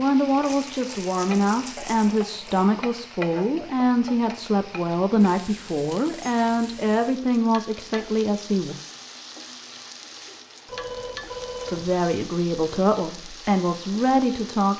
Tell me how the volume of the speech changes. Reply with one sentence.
The volume of the speech stays about the same.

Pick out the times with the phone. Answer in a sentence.
The phone can be heard from 10.7 to 11.9 s.